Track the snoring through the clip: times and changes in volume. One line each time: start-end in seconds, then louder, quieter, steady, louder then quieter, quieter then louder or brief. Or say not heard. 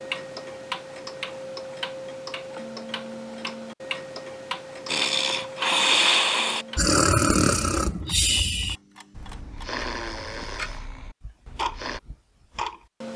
4.8-12.0 quieter.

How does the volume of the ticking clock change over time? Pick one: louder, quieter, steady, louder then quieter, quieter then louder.
quieter then louder.